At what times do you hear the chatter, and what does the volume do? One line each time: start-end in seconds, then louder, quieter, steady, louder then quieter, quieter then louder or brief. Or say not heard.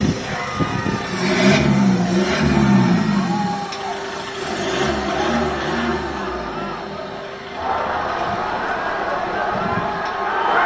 0.1-10.6 louder.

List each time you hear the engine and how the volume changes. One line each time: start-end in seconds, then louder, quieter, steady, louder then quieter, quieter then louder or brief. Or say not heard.
0.0-10.6 quieter.